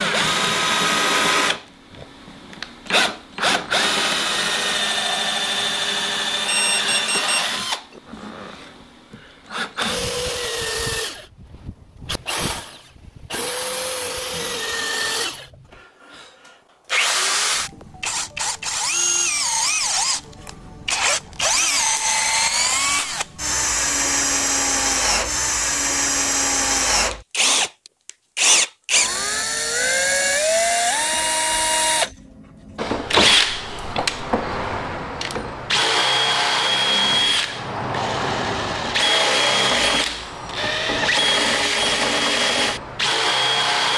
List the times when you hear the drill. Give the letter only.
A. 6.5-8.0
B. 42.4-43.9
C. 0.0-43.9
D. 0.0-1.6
C.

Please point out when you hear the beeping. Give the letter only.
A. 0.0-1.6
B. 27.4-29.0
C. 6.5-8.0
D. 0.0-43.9
C.